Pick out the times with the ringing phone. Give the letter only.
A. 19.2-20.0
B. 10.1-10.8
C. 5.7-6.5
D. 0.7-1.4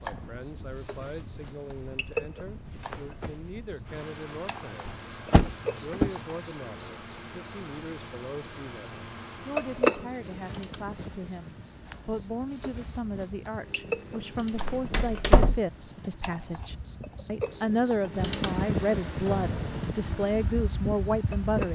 A.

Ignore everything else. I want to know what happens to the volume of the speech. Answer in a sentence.
The loudness of the speech goes up.